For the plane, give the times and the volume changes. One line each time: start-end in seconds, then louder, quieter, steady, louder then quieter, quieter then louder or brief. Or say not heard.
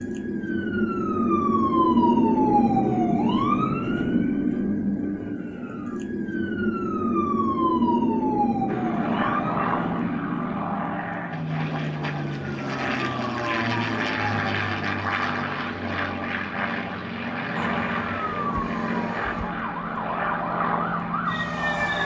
8.7-22.0 steady.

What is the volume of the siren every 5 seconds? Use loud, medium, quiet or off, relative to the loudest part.
loud, loud, medium, quiet, medium.